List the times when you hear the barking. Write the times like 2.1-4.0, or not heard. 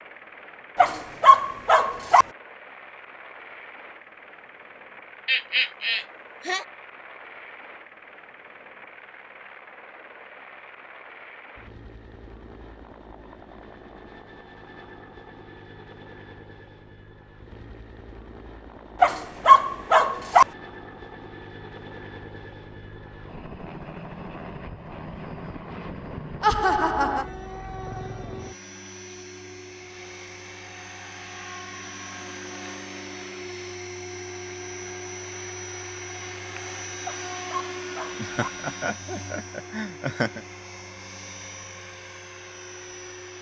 0.8-2.2, 19.0-20.4, 37.0-38.5.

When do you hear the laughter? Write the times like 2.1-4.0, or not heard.
5.2-6.7, 26.4-27.2, 38.1-40.4.